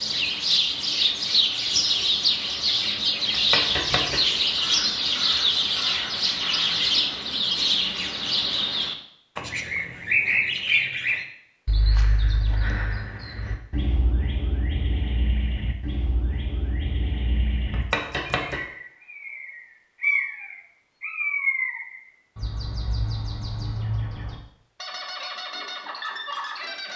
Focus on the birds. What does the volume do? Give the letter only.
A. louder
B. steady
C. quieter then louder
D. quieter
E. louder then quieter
D.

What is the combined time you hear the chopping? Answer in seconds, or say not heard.
2 s.